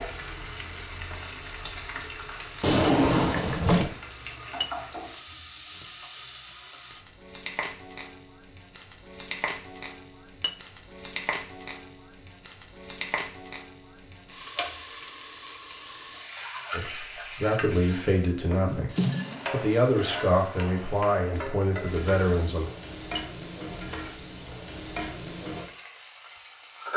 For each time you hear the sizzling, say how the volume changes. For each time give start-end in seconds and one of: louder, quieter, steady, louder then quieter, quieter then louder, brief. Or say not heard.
0.0-26.9 steady.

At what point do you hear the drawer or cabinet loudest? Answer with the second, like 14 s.
3 s.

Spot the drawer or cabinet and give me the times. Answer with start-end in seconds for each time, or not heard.
2.6-4.0, 18.6-19.4.